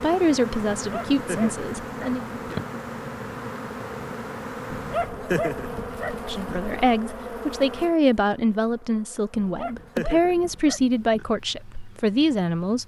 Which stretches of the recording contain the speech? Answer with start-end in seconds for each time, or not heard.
0.0-2.2, 6.2-12.8.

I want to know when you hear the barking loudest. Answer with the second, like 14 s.
5 s.